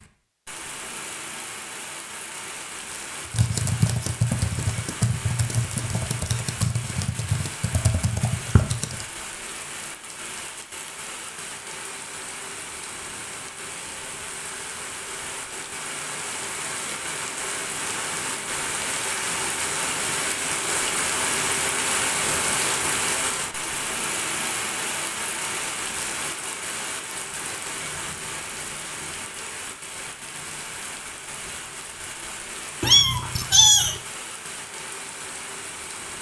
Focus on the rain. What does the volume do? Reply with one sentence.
The volume of the rain goes up, then down.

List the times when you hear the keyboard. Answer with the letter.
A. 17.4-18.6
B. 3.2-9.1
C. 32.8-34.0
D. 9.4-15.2
B.